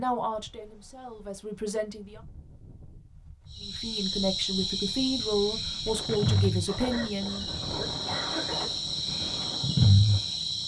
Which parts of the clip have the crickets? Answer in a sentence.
You can hear the crickets from 3.5 to 10.6 s.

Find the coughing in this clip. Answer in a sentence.
The coughing can be heard from 6.7 to 8.7 s.